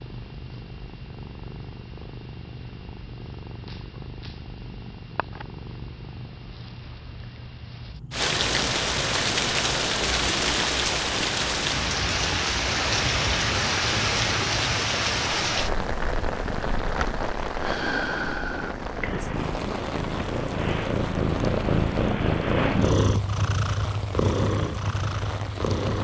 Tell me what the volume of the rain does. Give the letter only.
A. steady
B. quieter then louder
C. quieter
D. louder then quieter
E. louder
C.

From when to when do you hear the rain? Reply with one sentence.
You can hear the rain from 8.1 to 25.9 s.